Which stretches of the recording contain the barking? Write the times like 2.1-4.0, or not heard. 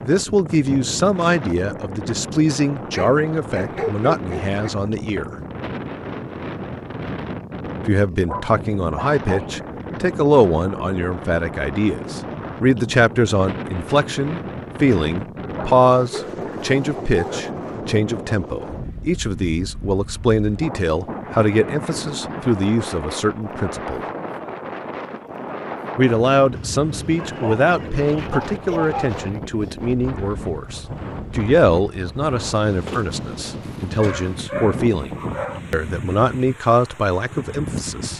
2.9-4.7, 8.2-9.6, 15.4-17.4, 27.1-29.1, 33.6-35.6.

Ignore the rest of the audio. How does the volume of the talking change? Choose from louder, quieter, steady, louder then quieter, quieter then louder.
steady.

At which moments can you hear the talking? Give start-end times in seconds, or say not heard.
0.0-5.3, 7.8-24.1, 25.9-38.1.